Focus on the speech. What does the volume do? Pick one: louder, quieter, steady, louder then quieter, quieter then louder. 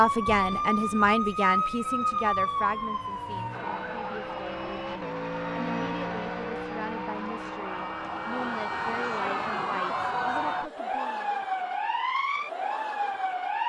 quieter.